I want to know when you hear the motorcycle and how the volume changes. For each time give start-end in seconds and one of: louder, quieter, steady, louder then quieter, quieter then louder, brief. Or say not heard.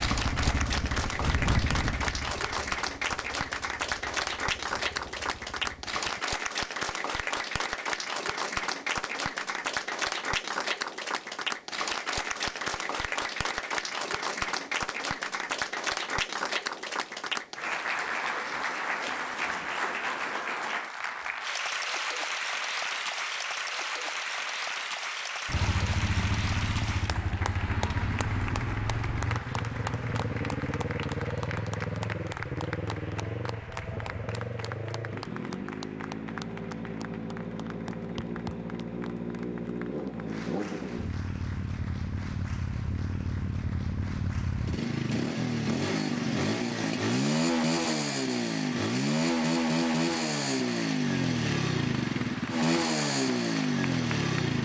0.0-6.2 quieter
25.4-54.6 louder.